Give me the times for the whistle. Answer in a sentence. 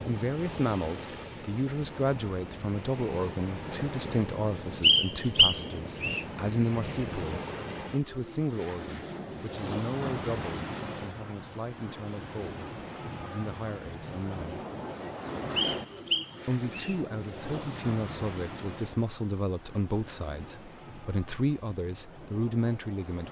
The whistle can be heard from 4.8 to 6.2 s and from 15.6 to 16.9 s.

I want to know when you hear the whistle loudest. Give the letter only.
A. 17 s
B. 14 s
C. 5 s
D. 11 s
C.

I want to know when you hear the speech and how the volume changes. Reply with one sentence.
You can hear the speech from 0.1 to 14.6 s, getting quieter; and from 16.4 to 23.2 s, at a steady volume.